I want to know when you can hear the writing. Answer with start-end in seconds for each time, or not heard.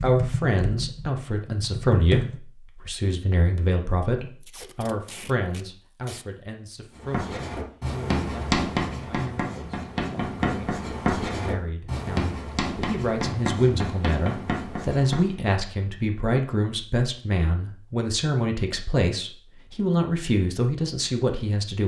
7.0-15.3.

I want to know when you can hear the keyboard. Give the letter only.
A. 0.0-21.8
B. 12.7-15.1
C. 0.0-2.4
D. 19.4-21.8
C.